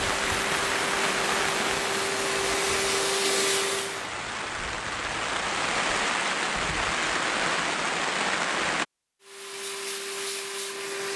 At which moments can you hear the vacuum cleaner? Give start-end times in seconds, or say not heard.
0.0-4.1, 9.2-11.1.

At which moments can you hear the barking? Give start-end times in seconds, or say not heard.
not heard.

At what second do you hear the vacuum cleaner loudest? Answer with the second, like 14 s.
3 s.